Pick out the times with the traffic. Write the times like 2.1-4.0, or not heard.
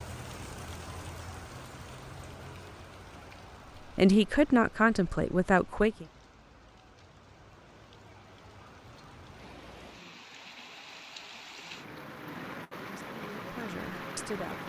not heard.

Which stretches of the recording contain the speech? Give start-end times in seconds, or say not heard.
4.0-6.0, 12.8-14.6.